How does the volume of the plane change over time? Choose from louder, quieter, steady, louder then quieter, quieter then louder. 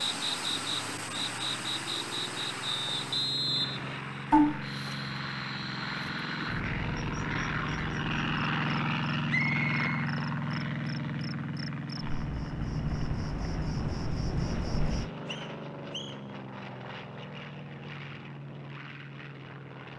louder then quieter.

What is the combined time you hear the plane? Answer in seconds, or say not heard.
20 s.